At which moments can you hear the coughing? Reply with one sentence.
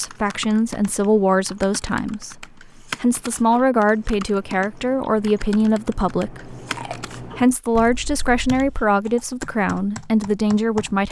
The coughing can't be heard in this clip.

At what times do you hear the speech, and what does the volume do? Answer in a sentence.
The speech can be heard from 0.0 to 11.0 s, at a steady volume.